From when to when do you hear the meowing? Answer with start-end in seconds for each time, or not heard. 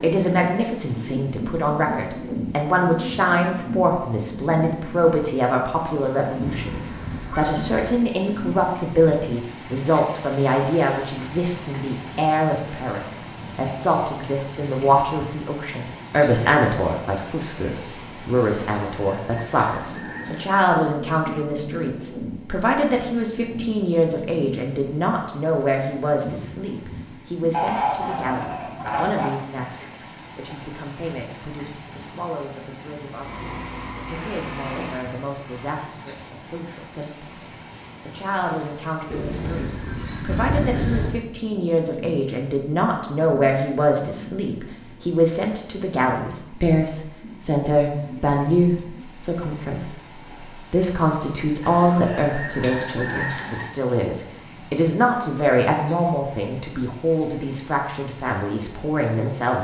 not heard.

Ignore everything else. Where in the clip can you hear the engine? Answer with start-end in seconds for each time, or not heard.
33.1-35.8.